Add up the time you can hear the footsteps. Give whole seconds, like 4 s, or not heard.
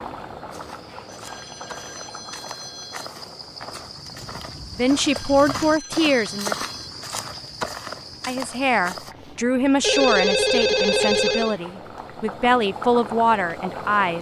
9 s.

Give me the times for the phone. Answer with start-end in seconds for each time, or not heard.
1.1-3.1, 5.1-6.9, 9.8-11.6.